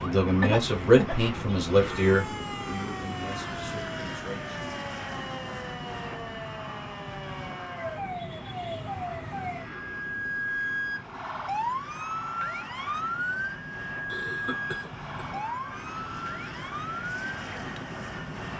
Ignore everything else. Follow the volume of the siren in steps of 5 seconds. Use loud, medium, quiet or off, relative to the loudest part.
medium, medium, loud, medium.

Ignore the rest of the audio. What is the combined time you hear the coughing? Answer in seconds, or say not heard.
2 s.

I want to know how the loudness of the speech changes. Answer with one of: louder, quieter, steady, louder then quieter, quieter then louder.
quieter.